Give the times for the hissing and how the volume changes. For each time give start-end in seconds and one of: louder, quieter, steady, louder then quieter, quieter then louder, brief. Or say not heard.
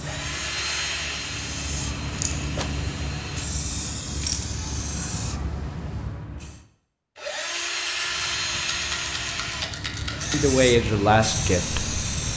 0.0-6.7 louder
8.0-12.3 louder.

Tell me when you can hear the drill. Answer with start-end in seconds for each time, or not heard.
0.0-3.5, 7.2-12.2.